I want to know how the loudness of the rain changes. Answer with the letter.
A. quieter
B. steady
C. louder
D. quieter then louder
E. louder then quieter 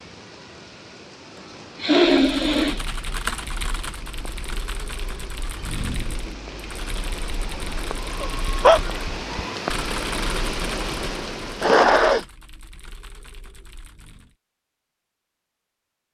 C.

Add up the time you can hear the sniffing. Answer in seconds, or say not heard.
3 s.